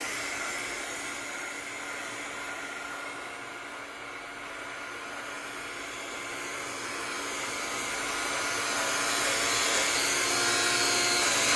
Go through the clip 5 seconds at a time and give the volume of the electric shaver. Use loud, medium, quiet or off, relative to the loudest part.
quiet, medium, loud.